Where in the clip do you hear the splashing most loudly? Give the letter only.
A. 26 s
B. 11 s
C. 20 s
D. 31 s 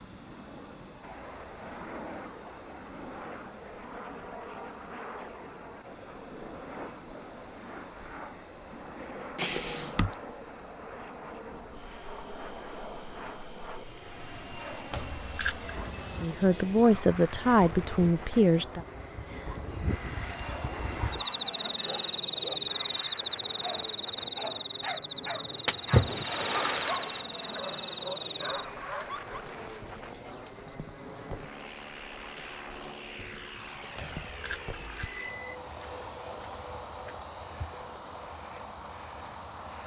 A.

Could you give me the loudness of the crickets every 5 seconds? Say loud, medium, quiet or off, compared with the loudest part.
quiet, quiet, quiet, quiet, loud, loud, loud, loud.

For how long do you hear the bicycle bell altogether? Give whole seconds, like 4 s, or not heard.
3 s.